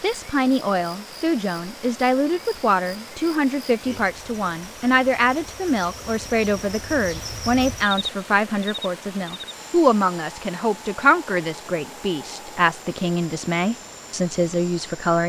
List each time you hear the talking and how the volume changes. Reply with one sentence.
You can hear the talking from 0.0 to 15.2 s, at a steady volume.